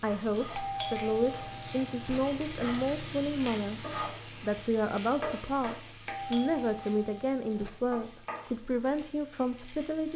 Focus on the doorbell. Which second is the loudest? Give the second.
1 s.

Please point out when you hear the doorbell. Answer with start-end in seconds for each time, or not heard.
0.6-2.2, 6.0-7.7.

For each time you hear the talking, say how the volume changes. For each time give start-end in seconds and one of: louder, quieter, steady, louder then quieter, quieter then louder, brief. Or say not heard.
0.0-10.1 steady.